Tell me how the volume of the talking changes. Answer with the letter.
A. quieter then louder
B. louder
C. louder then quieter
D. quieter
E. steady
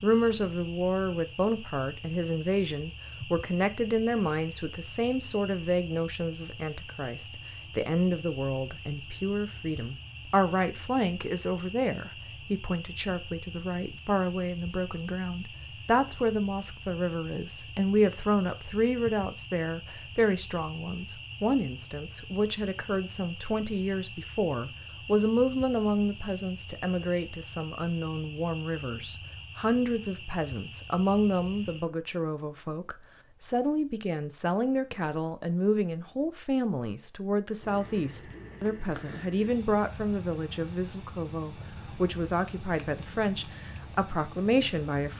E.